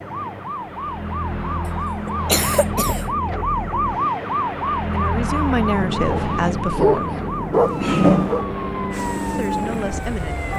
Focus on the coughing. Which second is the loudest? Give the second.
8 s.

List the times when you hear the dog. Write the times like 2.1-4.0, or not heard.
6.0-8.4.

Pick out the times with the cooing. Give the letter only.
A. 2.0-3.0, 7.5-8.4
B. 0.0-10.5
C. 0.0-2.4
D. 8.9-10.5
D.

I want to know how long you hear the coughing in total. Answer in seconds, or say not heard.
2 s.